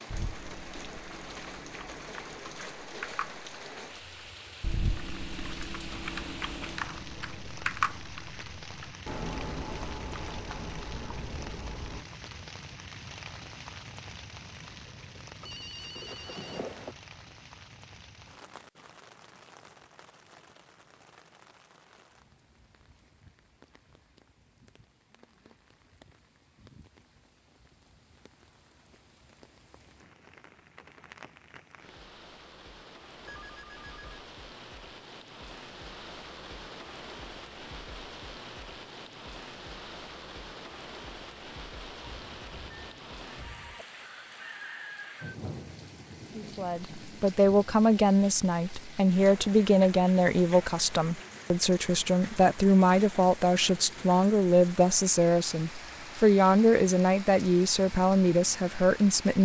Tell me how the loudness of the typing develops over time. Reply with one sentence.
The volume of the typing goes up, then down.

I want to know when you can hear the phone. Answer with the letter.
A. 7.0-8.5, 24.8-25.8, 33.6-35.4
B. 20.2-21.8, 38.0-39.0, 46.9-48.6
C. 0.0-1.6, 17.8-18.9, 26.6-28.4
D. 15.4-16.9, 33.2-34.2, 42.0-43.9
D.